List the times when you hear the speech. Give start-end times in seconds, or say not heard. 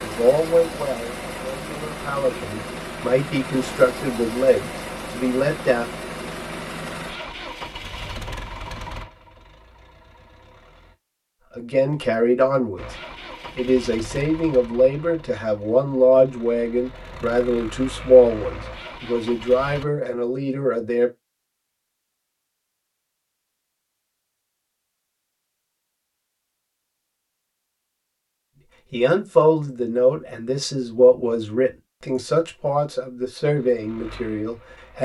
0.0-5.8, 11.6-12.9, 13.6-21.1, 28.9-35.0.